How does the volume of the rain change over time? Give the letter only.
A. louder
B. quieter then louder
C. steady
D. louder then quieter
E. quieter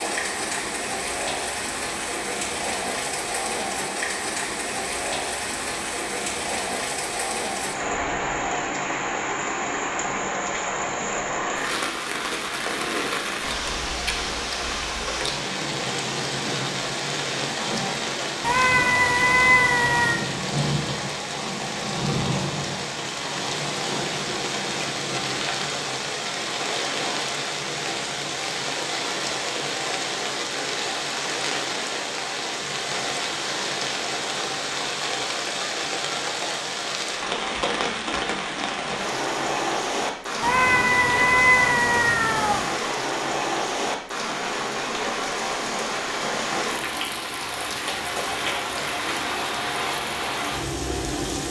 C.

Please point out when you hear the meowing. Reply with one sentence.
You can hear the meowing from 18.4 to 20.2 s and from 40.4 to 42.7 s.